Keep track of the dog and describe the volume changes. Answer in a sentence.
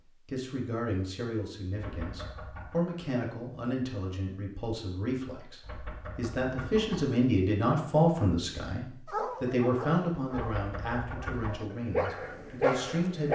The loudness of the dog goes down, then up.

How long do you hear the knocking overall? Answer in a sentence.
The knocking can be heard for 4 seconds in total.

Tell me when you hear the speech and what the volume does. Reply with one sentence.
You can hear the speech from 0.0 to 13.3 s, getting louder then quieter.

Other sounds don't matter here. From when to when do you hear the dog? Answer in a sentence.
The dog can be heard from 9.1 to 13.3 s.